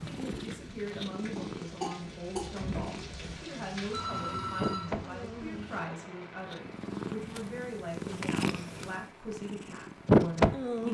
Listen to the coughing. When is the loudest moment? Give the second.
2 s.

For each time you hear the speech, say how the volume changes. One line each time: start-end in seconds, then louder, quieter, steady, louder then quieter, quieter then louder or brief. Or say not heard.
0.0-10.6 steady.